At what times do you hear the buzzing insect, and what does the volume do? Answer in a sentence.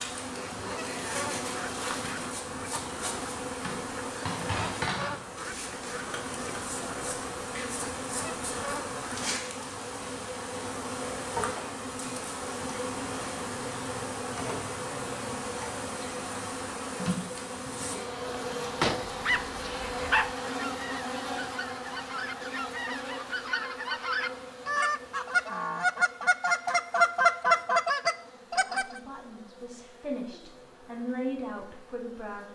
You can hear the buzzing insect from 0.0 to 32.4 s, getting quieter.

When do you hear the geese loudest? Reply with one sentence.
The volume of the geese peaks at 27 seconds.